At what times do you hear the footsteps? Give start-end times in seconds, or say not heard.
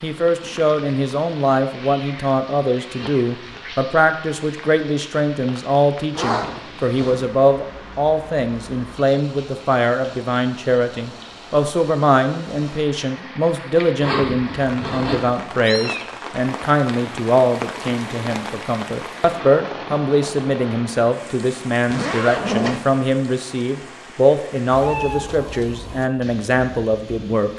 not heard.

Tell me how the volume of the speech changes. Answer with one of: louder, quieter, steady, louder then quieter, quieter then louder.
steady.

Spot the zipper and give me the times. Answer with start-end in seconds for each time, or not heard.
6.1-7.2, 14.0-15.3, 21.9-22.8.